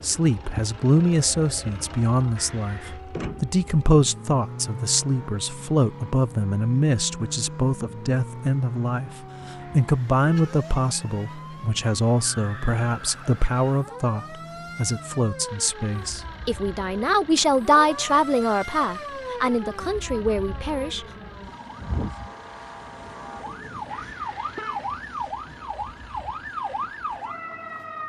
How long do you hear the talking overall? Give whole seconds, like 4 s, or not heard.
21 s.